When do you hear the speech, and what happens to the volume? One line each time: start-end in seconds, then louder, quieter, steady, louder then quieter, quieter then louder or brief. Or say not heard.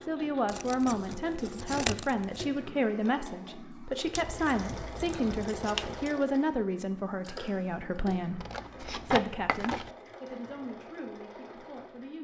0.0-12.1 quieter.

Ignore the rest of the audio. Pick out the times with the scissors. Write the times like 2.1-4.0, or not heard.
0.5-2.5, 4.2-6.1, 8.3-9.9.